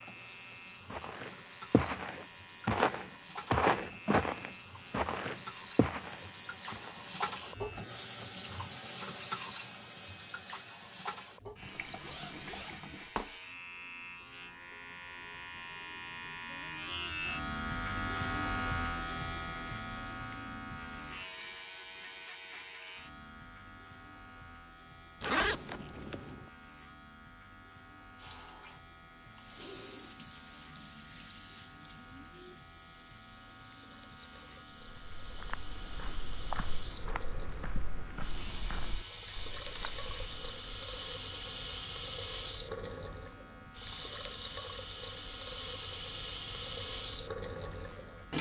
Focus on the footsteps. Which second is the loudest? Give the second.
4 s.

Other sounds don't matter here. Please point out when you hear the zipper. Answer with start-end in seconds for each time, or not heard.
11.8-13.3, 25.2-26.4, 38.3-38.9.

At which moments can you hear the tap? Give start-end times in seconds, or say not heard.
0.0-13.1, 28.1-48.3.